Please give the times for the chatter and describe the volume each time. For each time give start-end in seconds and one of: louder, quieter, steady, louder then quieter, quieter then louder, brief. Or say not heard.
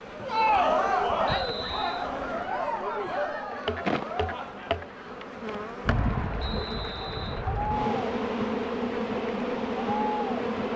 0.1-10.7 quieter then louder.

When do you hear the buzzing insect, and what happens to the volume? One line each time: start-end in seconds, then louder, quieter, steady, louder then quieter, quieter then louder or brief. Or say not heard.
0.0-10.7 louder.